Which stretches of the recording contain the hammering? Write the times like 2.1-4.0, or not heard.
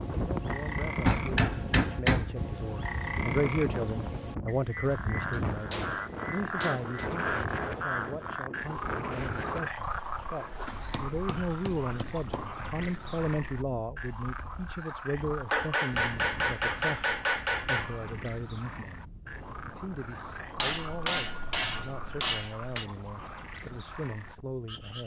1.1-2.5, 5.3-7.1, 10.6-12.6, 15.5-18.1, 20.6-22.9.